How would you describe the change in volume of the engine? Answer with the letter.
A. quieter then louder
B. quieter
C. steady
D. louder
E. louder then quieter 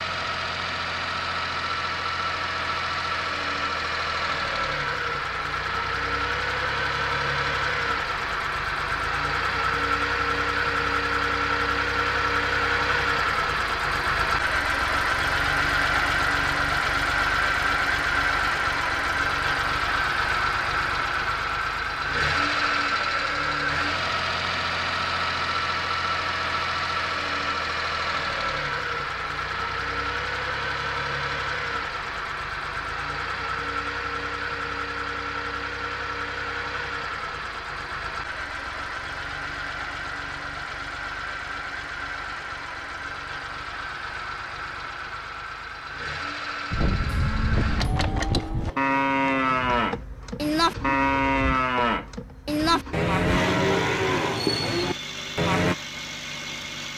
B.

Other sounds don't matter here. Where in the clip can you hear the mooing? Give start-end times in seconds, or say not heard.
46.7-55.8.